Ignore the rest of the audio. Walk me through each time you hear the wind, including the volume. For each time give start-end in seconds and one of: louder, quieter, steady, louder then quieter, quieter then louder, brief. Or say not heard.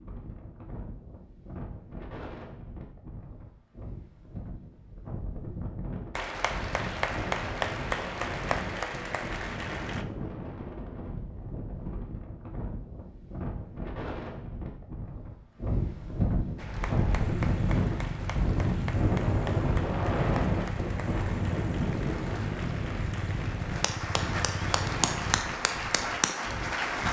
0.0-27.0 louder then quieter.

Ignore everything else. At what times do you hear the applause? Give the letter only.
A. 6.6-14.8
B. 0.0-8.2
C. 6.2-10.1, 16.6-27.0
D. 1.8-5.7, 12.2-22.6
C.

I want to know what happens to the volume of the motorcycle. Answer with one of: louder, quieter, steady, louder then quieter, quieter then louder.
steady.